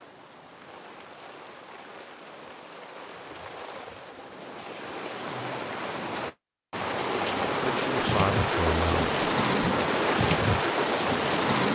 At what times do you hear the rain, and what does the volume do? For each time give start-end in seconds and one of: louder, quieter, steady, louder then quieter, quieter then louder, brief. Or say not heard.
0.0-11.6 louder.